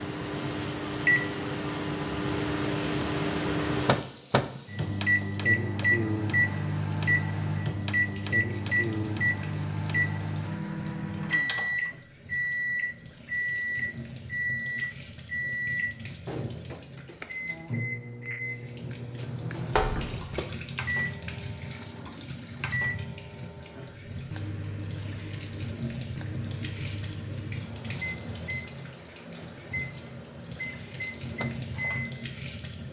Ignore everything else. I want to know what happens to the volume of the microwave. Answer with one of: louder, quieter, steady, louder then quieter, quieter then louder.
quieter.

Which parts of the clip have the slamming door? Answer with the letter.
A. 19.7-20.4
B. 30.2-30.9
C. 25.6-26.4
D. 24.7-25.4
A.